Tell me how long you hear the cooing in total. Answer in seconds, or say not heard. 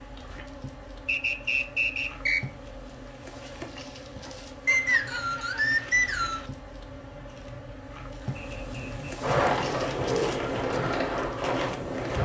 3 s.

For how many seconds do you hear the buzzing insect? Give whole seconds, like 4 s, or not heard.
12 s.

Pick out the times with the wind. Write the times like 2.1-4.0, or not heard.
4.8-12.1.